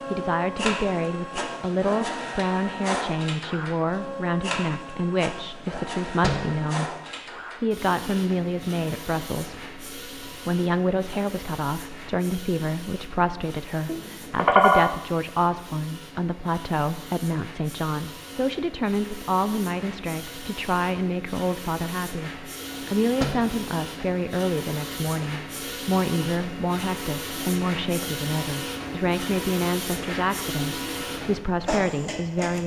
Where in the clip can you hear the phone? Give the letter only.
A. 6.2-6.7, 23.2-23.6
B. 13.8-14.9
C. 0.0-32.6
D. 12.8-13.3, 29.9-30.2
B.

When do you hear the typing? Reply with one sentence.
The typing can't be heard in this clip.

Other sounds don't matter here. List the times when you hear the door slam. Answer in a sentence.
You can hear the door slam from 6.2 to 6.7 s and from 23.2 to 23.6 s.